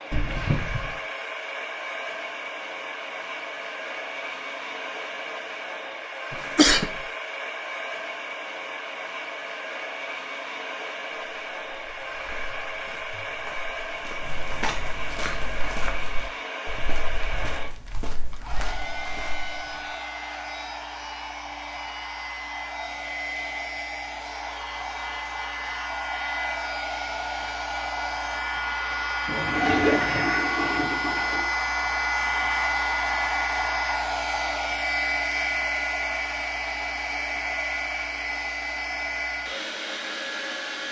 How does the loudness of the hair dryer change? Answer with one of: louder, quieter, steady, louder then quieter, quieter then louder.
louder.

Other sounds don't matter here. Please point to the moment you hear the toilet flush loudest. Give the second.
30 s.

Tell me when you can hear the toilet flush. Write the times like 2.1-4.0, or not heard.
0.1-0.9, 29.2-31.4.